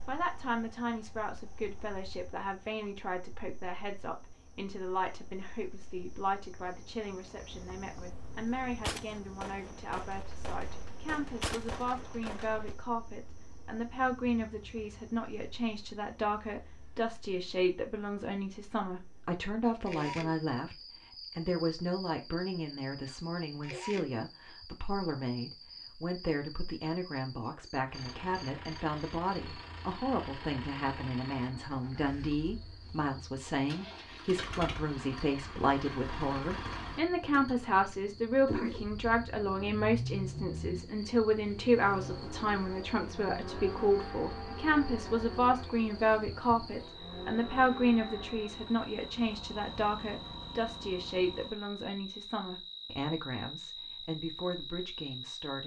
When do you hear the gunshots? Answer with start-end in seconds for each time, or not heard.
8.8-12.8.